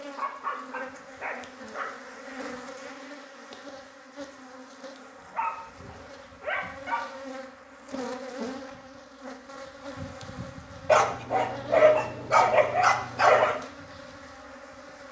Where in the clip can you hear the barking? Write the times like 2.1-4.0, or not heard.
0.1-2.1, 5.2-7.0, 10.8-13.6.